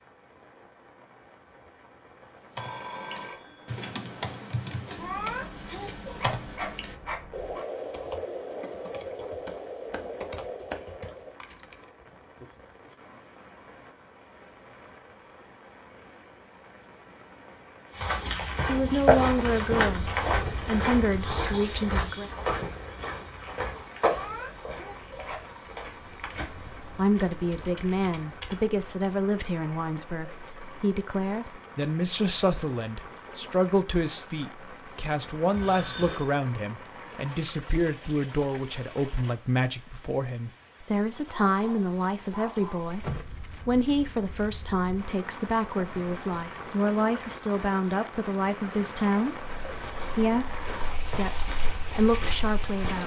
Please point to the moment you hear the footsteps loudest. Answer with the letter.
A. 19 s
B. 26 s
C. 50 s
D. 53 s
A.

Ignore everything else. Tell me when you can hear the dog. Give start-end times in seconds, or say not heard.
5.0-7.7, 24.0-25.4, 41.3-42.9.